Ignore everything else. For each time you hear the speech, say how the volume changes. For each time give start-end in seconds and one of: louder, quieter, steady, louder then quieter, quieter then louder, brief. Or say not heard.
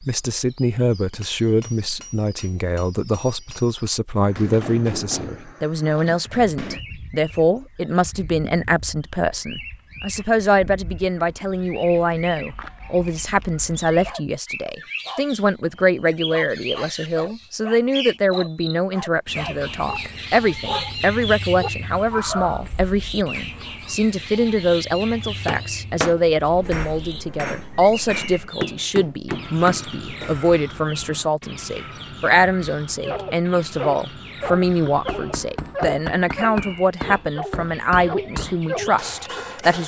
0.0-39.8 steady.